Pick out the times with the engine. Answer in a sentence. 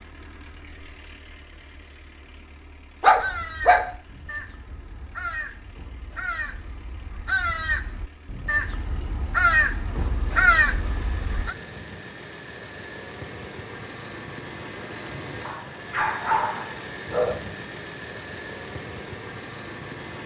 You can hear the engine from 0.0 to 20.2 s.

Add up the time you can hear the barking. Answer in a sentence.
You can hear the barking for 3 seconds altogether.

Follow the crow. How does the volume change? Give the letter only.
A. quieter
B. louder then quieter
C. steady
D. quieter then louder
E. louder
E.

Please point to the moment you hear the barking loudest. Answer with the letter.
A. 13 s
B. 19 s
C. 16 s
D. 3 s
D.